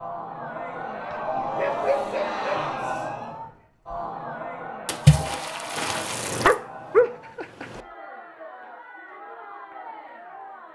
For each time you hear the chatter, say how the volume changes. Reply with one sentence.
You can hear the chatter from 0.0 to 10.7 s, getting quieter.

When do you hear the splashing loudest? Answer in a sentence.
The volume of the splashing peaks at 5 seconds.